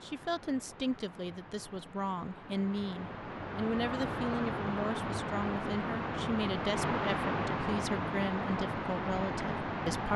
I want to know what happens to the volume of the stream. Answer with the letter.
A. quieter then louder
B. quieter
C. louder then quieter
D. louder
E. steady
D.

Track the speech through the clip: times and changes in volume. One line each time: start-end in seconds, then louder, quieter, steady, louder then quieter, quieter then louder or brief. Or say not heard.
0.0-10.1 steady.